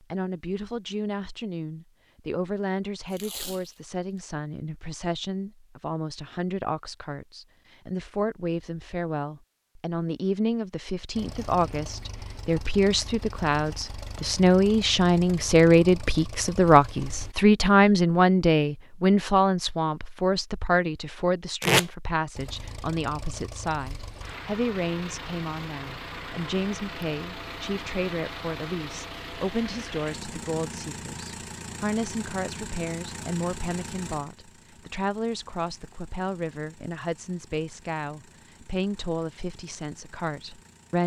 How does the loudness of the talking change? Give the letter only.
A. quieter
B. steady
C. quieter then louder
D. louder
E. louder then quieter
E.